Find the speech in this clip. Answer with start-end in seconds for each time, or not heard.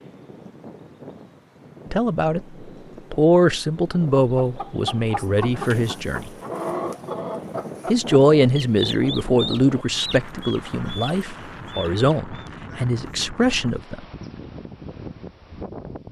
1.9-6.3, 7.8-14.1.